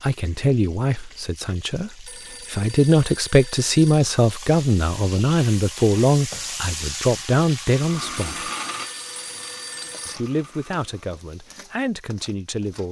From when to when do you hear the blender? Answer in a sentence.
The blender can be heard from 7.8 to 11.1 s.